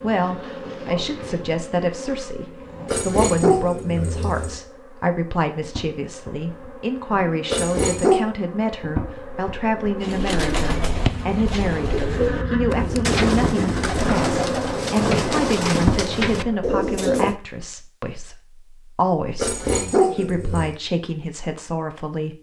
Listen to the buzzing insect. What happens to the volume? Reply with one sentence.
The volume of the buzzing insect goes down, then up.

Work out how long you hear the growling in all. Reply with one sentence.
You can hear the growling for 4 seconds altogether.